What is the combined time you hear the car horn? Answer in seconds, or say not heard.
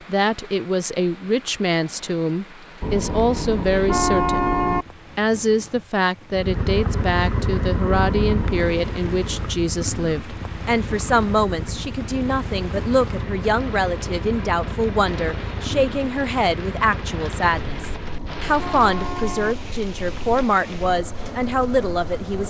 5 s.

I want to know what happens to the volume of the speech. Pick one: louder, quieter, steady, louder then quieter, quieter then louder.
steady.